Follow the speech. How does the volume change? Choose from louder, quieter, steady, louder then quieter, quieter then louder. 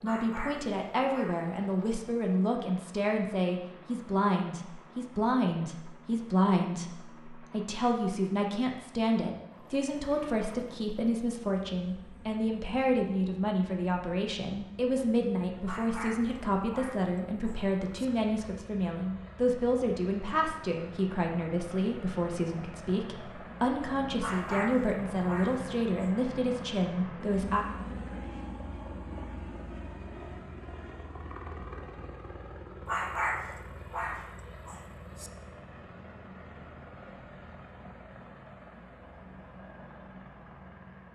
steady.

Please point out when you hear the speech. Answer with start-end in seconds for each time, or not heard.
0.0-27.6.